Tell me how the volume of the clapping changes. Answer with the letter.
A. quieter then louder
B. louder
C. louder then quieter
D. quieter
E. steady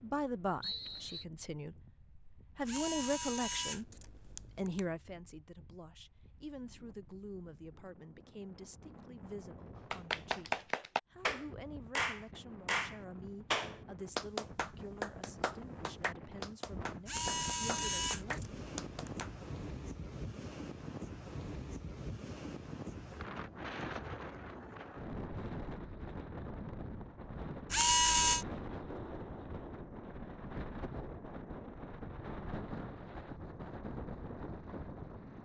D.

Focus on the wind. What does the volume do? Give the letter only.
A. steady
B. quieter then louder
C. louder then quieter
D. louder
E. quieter
D.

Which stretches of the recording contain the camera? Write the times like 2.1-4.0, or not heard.
2.6-4.8, 17.1-19.3, 27.7-28.4.